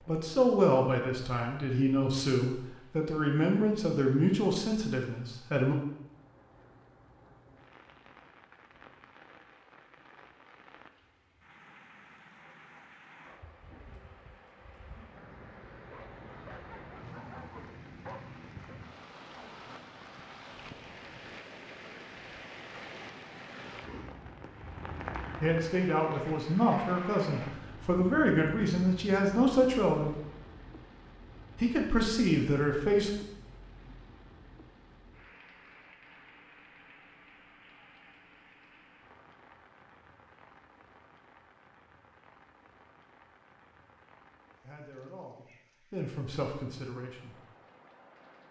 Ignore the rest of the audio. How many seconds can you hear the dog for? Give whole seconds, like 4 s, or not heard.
3 s.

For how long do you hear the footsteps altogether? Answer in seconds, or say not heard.
not heard.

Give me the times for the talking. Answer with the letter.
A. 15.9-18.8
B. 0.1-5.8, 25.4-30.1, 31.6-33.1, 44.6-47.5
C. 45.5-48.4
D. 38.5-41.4
B.